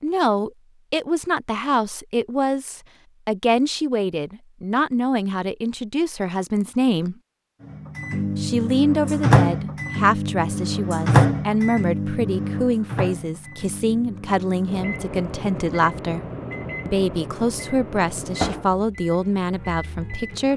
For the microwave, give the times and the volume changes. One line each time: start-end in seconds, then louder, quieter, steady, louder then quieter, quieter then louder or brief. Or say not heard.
7.7-20.5 quieter.